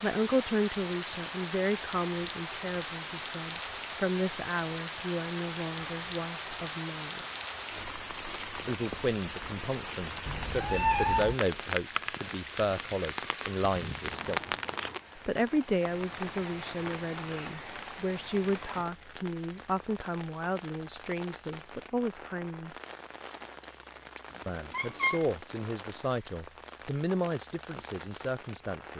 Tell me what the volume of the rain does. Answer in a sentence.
The loudness of the rain goes down.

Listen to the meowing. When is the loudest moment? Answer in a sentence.
The loudest moment of the meowing is at 11 seconds.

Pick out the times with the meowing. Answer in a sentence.
You can hear the meowing from 10.2 to 11.3 s and from 24.3 to 25.3 s.